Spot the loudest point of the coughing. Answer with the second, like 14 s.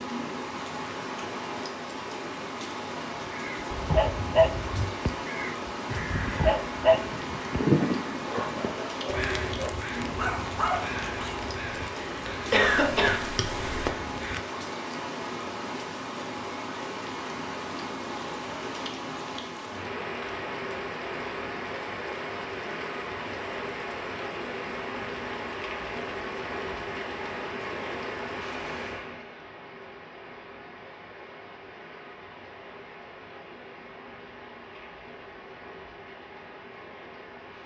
13 s.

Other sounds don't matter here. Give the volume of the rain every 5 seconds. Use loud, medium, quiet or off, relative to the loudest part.
loud, loud, loud, loud, loud, loud, medium, medium.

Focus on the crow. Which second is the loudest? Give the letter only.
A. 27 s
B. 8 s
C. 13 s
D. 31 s
B.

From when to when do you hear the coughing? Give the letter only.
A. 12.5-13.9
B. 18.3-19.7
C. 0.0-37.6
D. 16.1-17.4
A.